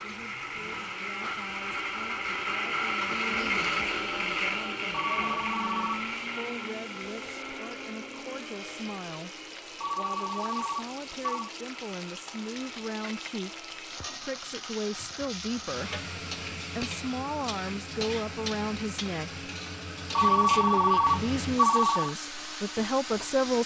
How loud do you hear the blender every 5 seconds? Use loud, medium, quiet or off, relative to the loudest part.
loud, medium, quiet, quiet, quiet.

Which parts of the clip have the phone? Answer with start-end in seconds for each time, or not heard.
4.9-6.1, 9.8-11.5, 20.1-22.1.